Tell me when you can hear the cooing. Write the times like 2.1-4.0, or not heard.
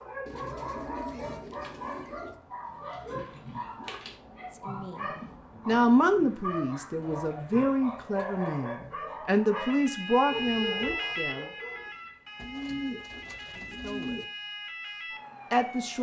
0.2-2.4, 7.0-8.6, 12.3-14.3.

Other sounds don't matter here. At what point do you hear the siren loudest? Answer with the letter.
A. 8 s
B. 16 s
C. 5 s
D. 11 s
D.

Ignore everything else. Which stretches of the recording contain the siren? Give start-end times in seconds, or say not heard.
9.6-15.9.